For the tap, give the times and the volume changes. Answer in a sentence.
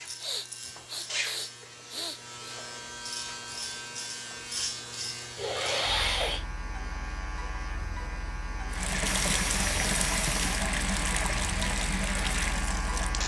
You can hear the tap from 8.7 to 13.2 s, at a steady volume.